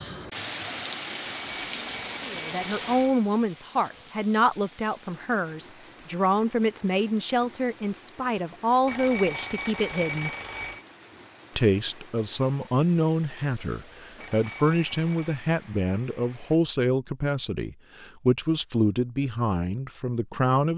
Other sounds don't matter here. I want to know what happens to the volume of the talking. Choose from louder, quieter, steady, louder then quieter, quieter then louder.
steady.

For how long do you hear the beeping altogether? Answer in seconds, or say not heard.
5 s.